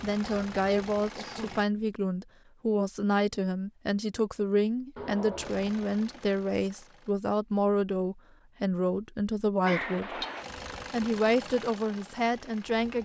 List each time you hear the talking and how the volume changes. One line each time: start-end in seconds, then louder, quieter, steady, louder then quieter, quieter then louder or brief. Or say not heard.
0.0-10.2 steady
10.9-13.0 brief.